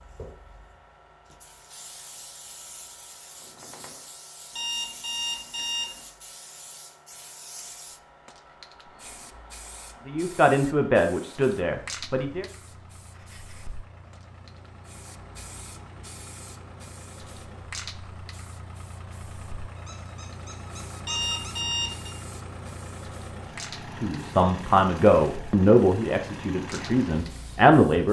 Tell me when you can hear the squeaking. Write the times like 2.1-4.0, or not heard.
3.4-4.1, 13.1-13.7, 19.8-21.6.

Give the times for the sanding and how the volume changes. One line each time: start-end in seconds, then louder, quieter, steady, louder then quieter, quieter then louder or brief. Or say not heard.
not heard.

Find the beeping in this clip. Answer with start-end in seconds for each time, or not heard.
4.5-6.0, 21.1-22.1.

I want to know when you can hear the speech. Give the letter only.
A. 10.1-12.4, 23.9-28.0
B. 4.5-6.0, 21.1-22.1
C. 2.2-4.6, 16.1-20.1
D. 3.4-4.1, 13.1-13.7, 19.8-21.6
A.